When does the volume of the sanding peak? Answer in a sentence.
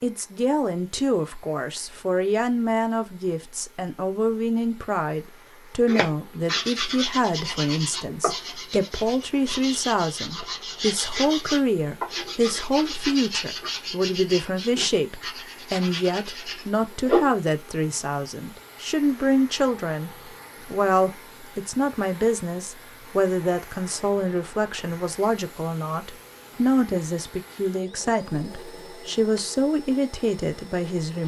The loudest moment of the sanding is at 17 seconds.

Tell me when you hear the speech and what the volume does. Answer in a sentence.
You can hear the speech from 0.0 to 31.2 s, at a steady volume.